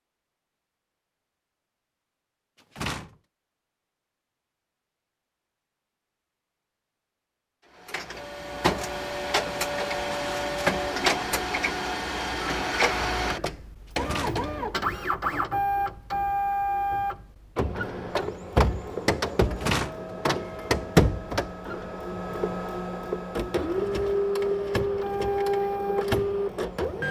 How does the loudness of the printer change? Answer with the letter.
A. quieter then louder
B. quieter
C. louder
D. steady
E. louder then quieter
D.